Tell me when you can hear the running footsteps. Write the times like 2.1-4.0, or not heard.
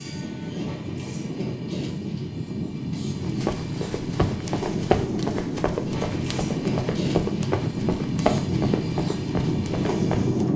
3.2-10.5.